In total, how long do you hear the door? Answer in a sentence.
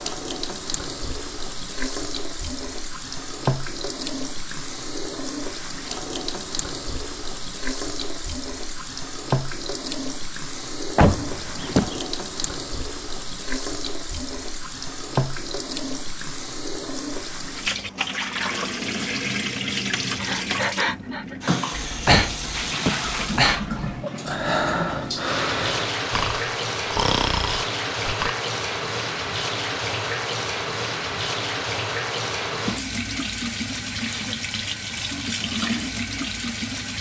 The door can be heard for 2 seconds in total.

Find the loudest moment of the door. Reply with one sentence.
The loudest moment of the door is at 11 seconds.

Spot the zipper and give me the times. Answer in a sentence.
You can't hear the zipper here.